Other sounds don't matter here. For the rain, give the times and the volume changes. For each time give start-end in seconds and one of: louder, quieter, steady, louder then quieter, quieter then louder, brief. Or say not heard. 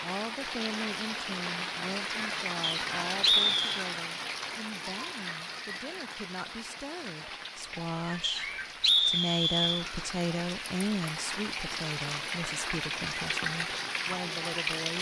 0.0-14.9 quieter then louder.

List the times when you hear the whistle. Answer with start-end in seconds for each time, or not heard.
2.6-3.9, 8.2-9.8.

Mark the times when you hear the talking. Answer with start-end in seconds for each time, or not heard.
0.0-14.9.